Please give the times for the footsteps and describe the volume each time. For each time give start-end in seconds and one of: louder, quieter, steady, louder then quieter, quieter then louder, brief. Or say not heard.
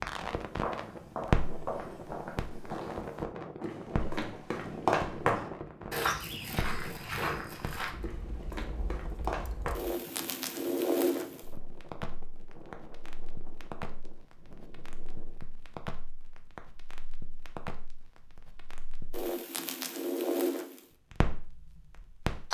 0.5-9.8 louder then quieter.